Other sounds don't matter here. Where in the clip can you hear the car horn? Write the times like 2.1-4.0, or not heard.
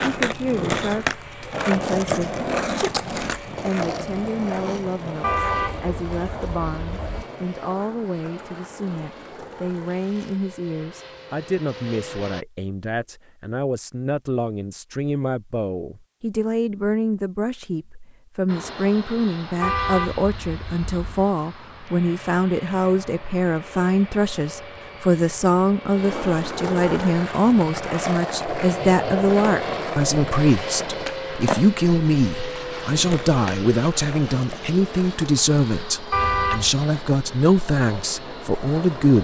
5.2-7.2, 19.6-21.3, 36.1-36.8.